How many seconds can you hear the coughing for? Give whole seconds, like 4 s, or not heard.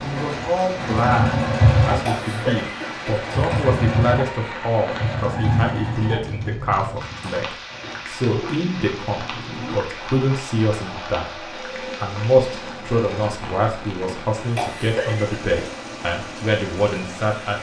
2 s.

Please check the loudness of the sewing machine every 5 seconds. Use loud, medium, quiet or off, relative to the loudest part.
loud, medium, quiet, quiet.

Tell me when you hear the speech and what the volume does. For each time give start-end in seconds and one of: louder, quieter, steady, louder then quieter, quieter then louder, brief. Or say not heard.
0.0-17.5 steady.